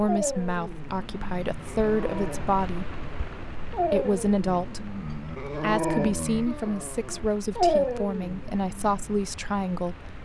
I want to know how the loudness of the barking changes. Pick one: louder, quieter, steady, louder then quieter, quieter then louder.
louder.